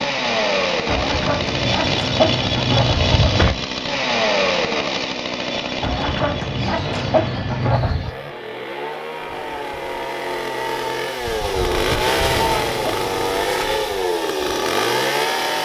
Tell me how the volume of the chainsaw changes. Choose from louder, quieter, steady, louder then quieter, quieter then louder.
quieter then louder.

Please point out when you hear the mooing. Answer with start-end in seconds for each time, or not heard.
not heard.